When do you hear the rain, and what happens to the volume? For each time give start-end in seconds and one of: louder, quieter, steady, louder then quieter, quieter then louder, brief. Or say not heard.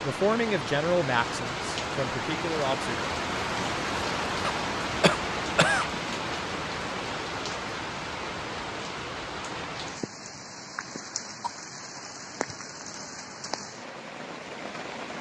0.0-15.1 quieter.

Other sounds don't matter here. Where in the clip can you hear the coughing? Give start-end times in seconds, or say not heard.
4.4-5.8, 10.8-11.6.